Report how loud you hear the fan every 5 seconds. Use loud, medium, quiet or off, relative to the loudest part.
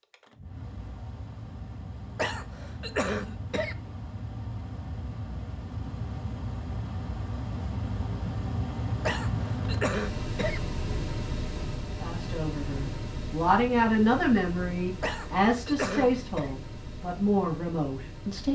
medium, loud, loud, medium.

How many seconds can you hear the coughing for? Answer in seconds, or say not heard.
5 s.